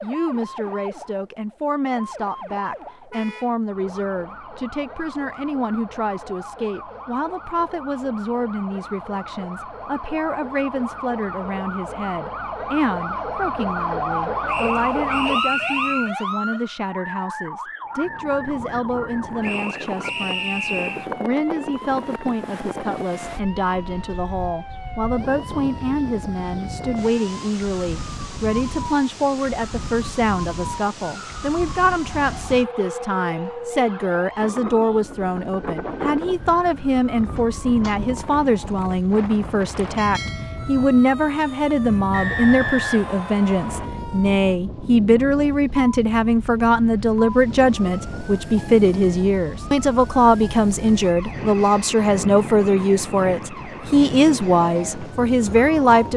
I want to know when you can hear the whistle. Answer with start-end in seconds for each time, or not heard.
14.4-16.1, 19.4-21.1, 42.1-43.9.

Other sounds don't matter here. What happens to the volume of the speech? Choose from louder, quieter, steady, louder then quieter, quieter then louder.
louder.